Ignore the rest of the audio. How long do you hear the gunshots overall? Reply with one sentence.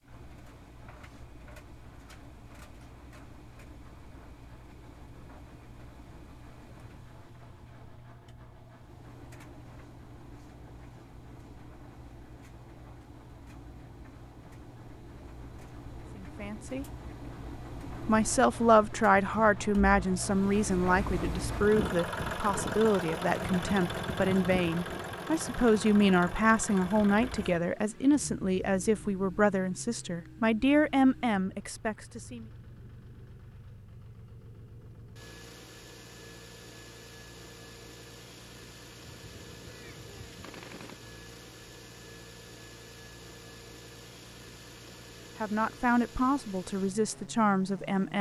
You can hear the gunshots for 2 seconds altogether.